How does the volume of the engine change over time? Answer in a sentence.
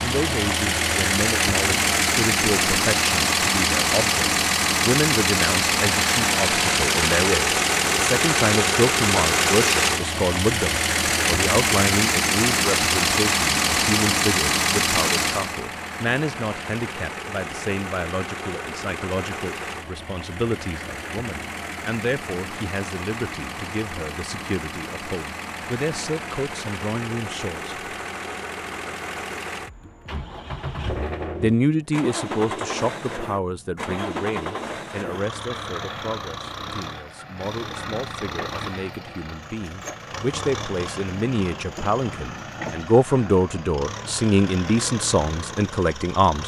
The volume of the engine goes down.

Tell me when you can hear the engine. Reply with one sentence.
You can hear the engine from 0.0 to 46.4 s.